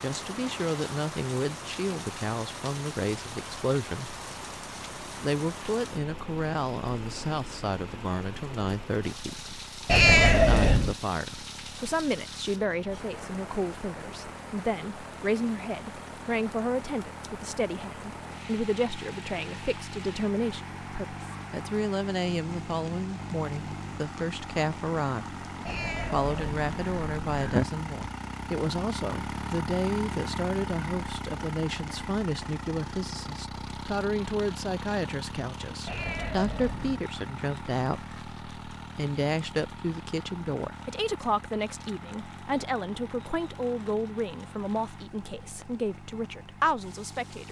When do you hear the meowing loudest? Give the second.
10 s.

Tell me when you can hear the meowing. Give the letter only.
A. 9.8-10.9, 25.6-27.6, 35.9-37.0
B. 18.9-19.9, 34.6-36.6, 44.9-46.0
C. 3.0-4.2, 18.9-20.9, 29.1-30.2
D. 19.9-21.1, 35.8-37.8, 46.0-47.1
A.